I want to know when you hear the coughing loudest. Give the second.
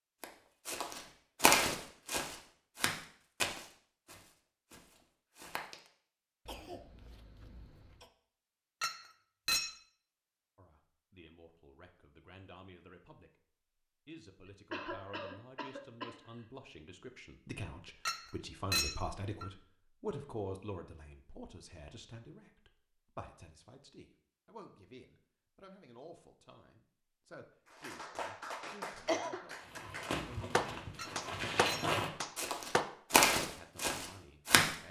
29 s.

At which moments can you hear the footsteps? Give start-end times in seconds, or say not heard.
0.2-5.8, 29.8-34.8.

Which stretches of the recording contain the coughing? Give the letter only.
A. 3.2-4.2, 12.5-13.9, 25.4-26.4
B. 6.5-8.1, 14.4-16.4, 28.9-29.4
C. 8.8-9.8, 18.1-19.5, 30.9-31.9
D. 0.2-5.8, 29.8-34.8
B.